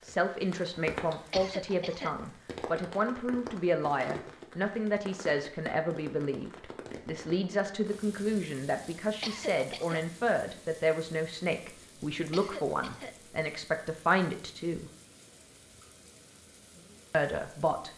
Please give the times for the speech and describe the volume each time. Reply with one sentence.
You can hear the speech from 0.0 to 14.9 s, at a steady volume; and briefly from 17.1 to 17.9 s.